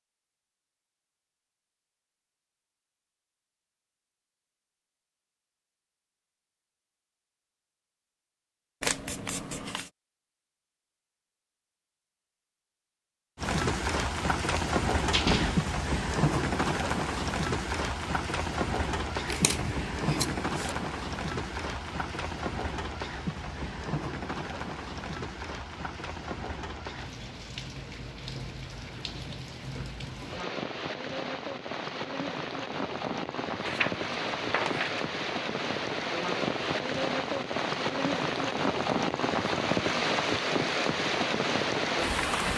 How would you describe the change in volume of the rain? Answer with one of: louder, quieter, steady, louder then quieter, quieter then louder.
quieter then louder.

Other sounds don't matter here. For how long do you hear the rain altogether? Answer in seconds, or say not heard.
29 s.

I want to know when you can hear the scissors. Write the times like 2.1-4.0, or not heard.
8.8-9.9, 19.2-20.8, 33.6-35.1.